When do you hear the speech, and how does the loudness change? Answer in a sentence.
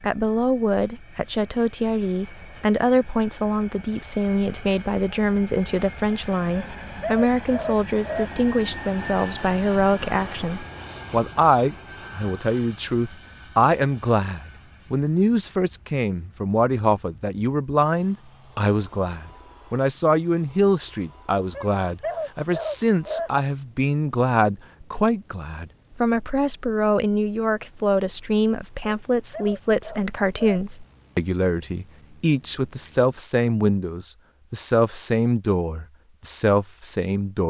The speech can be heard from 0.0 to 37.4 s, at a steady volume.